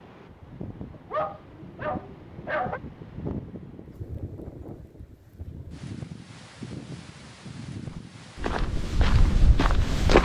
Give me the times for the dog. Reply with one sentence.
The dog can be heard from 1.1 to 2.8 s.